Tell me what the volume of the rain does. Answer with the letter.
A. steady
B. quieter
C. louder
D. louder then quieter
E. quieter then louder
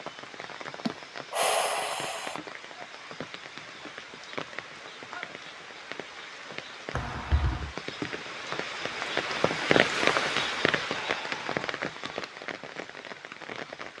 D.